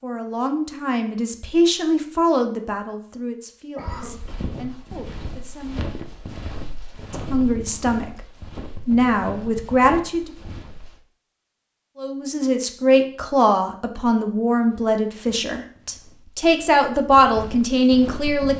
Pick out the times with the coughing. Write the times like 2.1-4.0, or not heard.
3.8-4.3.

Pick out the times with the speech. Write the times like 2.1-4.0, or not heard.
0.0-5.8, 7.1-8.2, 8.8-10.3, 11.9-18.5.